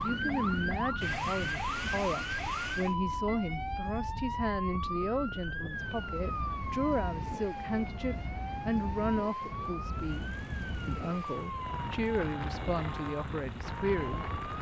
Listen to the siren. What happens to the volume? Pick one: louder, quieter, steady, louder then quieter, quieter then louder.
quieter.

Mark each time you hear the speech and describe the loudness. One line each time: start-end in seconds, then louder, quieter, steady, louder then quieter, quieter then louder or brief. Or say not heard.
0.0-14.2 steady.